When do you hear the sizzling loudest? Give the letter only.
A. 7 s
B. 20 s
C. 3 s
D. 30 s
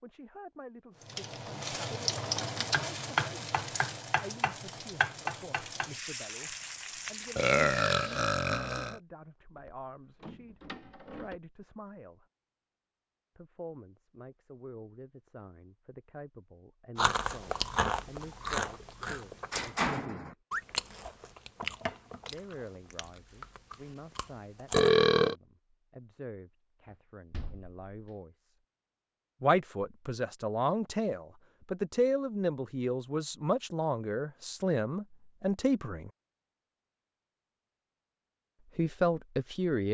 C.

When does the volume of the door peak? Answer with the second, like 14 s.
20 s.